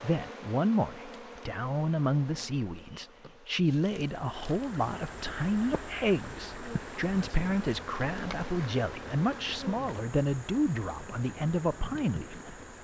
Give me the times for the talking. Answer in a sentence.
The talking can be heard from 0.0 to 12.6 s.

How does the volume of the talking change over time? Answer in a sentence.
The volume of the talking stays about the same.